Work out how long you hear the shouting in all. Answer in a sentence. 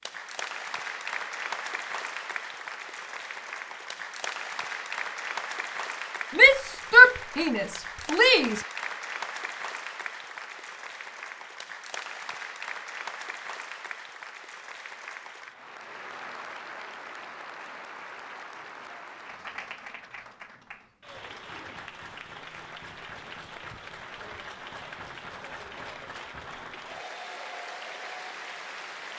You can hear the shouting for 2 seconds altogether.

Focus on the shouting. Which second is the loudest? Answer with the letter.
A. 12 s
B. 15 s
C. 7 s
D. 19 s
C.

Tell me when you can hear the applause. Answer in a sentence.
The applause can be heard from 0.0 to 29.1 s.